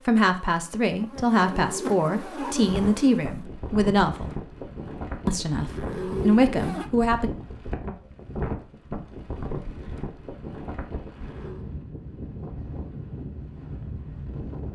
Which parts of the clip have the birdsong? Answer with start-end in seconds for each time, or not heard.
not heard.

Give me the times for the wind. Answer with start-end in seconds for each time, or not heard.
2.5-14.7.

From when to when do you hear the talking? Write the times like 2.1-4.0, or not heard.
0.1-4.3, 5.2-7.3.